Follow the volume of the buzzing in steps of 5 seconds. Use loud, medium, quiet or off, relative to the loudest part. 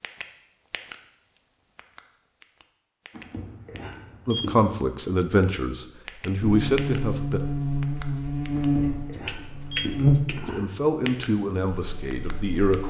off, loud, loud.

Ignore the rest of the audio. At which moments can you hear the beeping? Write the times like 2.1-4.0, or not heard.
3.1-4.7, 8.6-10.6.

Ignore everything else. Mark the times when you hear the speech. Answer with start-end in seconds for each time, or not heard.
4.2-7.4, 10.4-12.8.